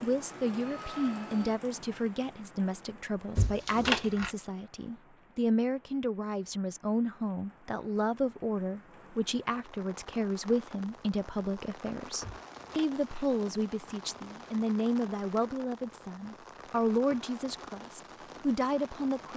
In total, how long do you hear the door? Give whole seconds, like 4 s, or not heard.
2 s.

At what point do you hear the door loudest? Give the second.
4 s.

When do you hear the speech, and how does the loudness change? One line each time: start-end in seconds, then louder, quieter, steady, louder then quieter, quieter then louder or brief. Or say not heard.
0.0-19.3 steady.